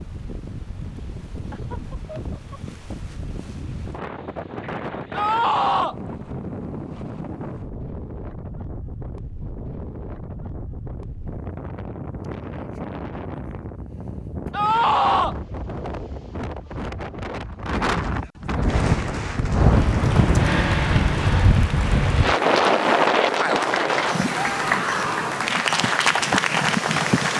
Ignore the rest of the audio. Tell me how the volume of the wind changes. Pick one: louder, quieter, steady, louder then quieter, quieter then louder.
louder.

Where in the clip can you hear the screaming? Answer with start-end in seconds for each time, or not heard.
5.1-6.0, 14.5-15.3, 24.4-25.5.